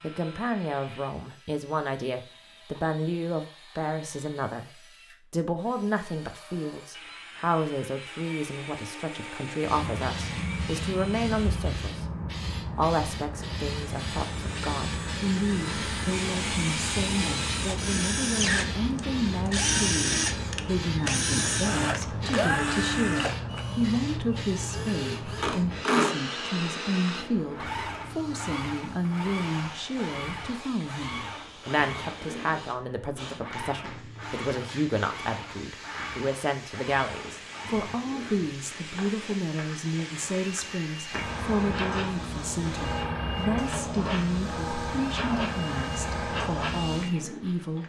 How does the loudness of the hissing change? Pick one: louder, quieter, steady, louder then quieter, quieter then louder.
quieter then louder.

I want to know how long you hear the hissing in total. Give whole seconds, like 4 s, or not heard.
38 s.